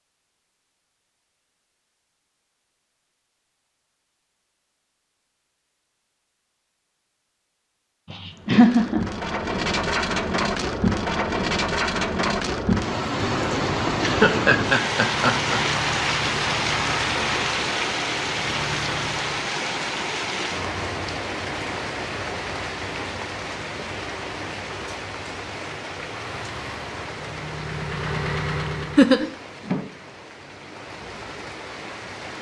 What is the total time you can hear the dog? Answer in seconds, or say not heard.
not heard.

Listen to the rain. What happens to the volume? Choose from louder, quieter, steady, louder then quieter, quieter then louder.
quieter.